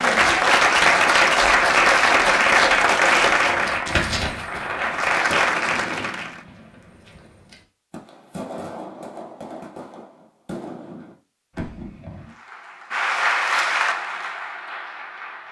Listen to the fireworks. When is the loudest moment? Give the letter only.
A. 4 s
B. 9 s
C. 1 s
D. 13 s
A.